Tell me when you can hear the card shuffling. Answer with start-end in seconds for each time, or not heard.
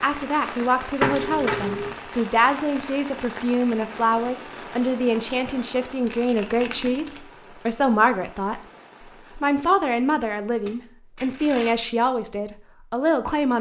1.0-1.9, 6.0-7.2, 10.5-11.8.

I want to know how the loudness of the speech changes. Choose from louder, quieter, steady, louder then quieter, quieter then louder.
steady.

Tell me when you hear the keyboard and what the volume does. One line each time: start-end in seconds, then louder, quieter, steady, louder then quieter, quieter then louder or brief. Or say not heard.
not heard.